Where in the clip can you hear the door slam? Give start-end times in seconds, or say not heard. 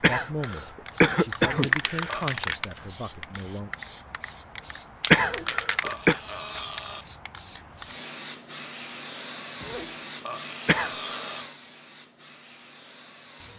not heard.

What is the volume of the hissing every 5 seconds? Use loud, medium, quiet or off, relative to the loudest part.
loud, loud, medium.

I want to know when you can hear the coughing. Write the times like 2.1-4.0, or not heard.
0.0-2.1, 5.1-6.2, 10.7-11.3.